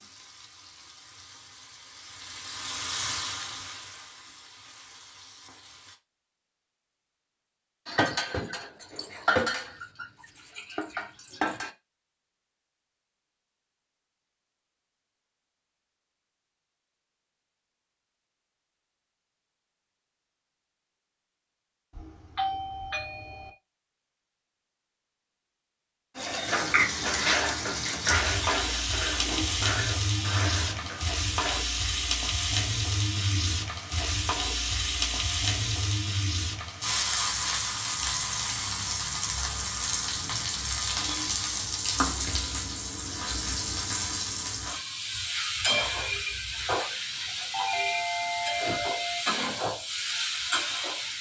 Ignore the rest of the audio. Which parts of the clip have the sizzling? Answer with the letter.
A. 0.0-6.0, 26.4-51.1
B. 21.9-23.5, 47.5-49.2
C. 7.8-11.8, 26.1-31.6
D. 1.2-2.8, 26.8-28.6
A.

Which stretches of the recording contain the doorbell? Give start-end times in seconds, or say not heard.
21.9-23.5, 47.5-49.2.